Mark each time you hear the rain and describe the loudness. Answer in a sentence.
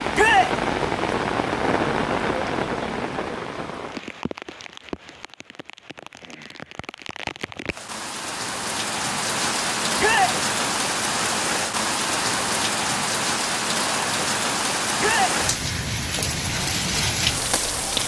You can hear the rain from 0.0 to 18.0 s, getting quieter then louder.